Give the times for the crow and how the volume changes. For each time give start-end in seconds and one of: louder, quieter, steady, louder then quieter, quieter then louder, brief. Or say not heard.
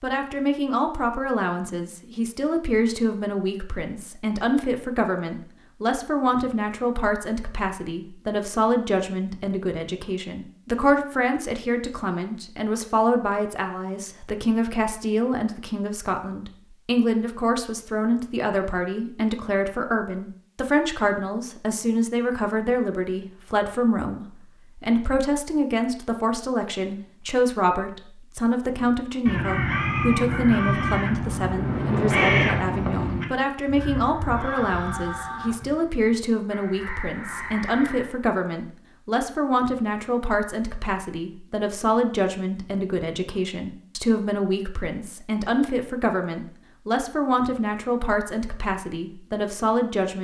28.8-38.1 quieter.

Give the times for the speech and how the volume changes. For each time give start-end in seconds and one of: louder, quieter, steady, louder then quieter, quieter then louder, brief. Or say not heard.
0.0-50.1 steady.